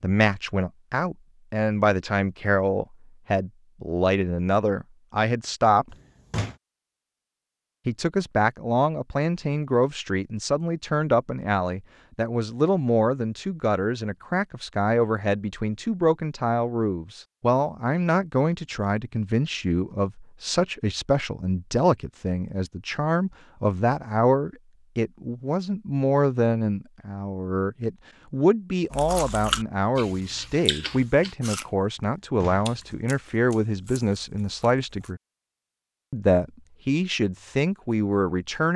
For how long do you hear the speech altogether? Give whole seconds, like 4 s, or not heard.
36 s.